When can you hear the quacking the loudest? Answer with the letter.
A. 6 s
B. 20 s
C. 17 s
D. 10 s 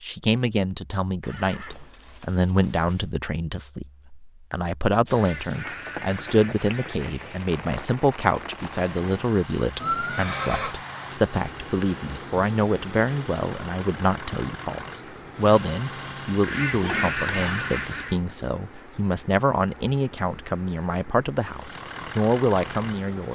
C.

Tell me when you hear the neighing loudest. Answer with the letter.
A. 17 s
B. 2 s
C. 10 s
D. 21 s
C.